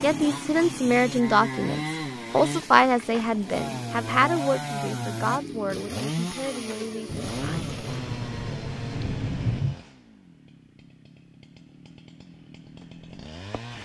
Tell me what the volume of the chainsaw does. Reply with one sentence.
The volume of the chainsaw goes down.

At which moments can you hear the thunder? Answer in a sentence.
The thunder can be heard from 7.0 to 9.8 s.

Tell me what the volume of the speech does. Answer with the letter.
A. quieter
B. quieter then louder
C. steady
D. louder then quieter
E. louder
A.